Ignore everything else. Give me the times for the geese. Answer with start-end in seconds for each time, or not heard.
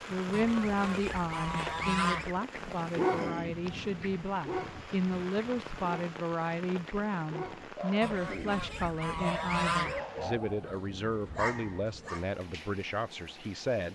0.3-2.4, 8.0-10.0.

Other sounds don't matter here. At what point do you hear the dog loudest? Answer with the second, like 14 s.
3 s.